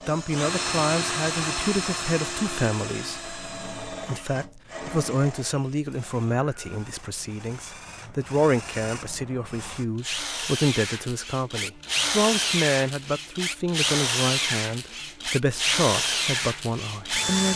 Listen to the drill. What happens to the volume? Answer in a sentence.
The volume of the drill goes down, then up.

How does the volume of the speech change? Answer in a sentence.
The loudness of the speech stays about the same.